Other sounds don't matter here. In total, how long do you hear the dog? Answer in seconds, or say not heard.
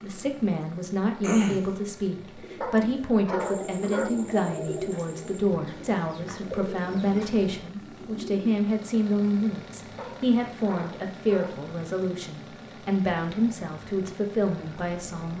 3 s.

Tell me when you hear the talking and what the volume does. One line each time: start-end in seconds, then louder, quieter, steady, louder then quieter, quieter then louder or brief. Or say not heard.
0.0-15.3 steady.